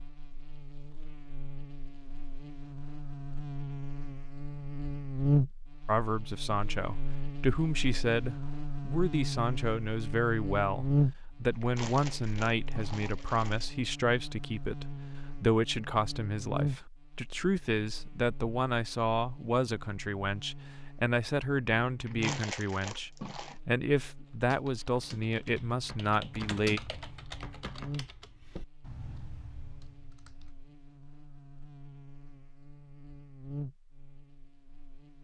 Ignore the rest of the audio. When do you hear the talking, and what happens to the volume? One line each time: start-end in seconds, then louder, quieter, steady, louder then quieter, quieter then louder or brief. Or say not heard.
5.8-26.8 steady.